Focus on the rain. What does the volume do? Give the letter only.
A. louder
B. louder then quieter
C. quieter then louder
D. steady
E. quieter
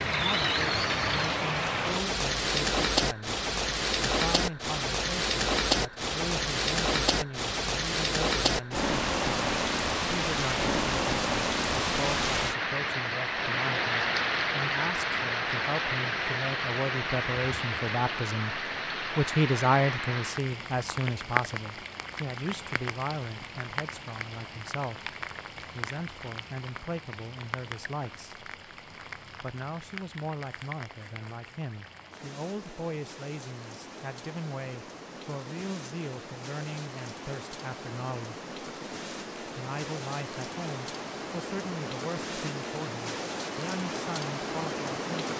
C.